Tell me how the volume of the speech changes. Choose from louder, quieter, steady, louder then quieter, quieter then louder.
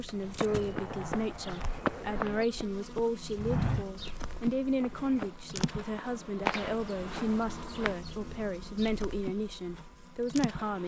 steady.